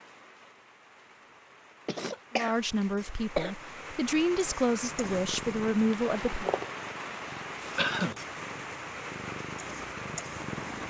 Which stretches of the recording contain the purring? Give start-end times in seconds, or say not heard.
5.0-10.8.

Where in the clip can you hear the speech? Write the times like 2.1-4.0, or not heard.
2.3-6.5.